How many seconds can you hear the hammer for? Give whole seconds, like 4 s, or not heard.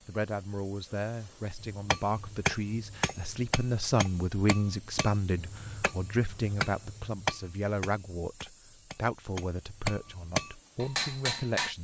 10 s.